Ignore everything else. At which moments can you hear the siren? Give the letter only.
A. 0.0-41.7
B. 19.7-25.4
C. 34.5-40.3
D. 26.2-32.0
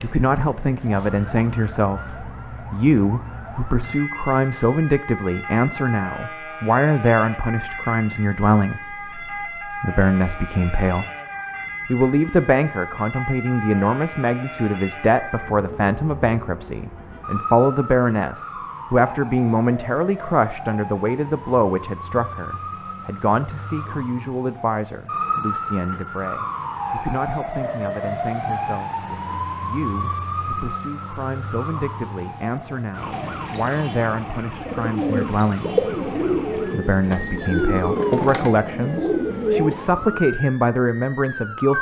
A.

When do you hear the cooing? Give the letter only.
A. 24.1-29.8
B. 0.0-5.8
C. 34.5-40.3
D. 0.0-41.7
C.